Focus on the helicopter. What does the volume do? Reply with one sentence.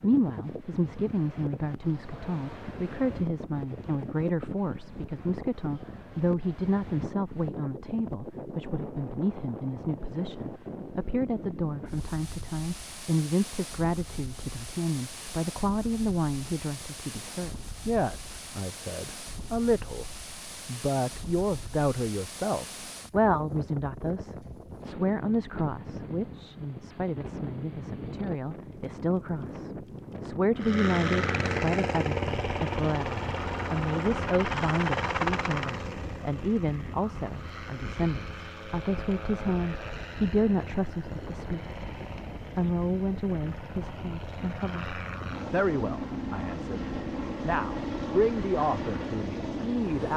The volume of the helicopter goes down, then up.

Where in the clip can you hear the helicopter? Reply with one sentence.
You can hear the helicopter from 30.6 to 50.1 s.